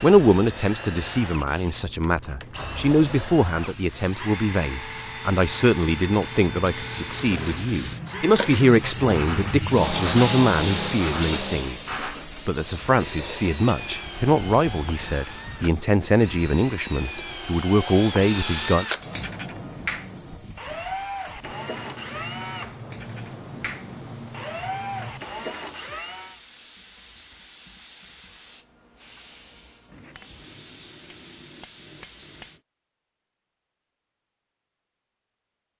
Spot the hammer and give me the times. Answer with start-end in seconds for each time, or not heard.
29.9-32.6.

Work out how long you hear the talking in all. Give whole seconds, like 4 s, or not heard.
18 s.